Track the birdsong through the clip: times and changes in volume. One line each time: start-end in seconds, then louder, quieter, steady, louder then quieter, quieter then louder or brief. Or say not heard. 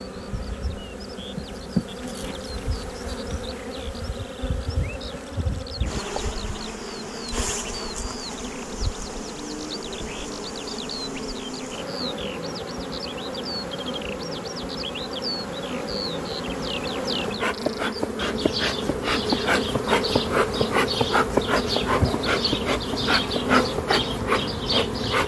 0.0-25.2 louder.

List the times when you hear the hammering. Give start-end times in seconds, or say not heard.
not heard.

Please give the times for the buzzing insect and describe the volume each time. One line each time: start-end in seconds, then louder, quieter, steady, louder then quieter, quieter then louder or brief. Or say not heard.
0.0-25.2 louder.